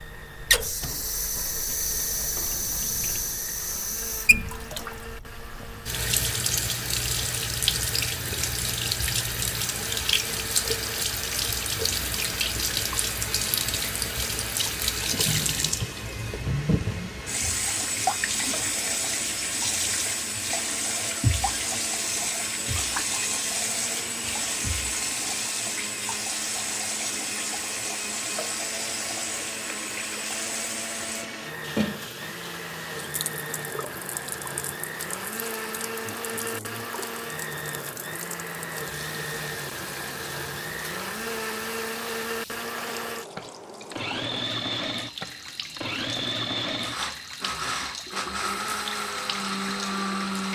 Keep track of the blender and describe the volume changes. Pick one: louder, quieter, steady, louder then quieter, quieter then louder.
louder.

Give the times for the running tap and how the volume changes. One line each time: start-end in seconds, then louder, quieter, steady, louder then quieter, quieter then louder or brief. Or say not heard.
0.0-50.5 quieter.